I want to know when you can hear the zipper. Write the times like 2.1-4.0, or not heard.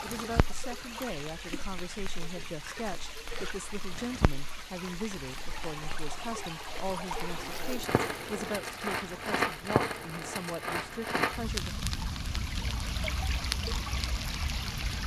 7.2-8.6.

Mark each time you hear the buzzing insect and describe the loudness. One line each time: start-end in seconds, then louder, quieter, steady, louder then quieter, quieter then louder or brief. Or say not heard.
not heard.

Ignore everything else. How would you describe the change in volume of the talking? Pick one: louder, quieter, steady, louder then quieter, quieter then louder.
steady.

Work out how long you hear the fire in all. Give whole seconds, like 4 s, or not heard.
15 s.